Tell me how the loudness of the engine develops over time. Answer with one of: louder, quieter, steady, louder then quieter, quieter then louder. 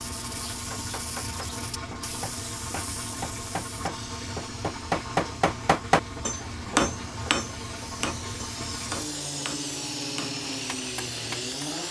steady.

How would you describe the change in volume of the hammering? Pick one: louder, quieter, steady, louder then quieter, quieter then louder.
louder then quieter.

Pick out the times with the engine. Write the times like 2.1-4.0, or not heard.
0.0-11.8.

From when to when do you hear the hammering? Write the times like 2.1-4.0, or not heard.
0.7-11.7.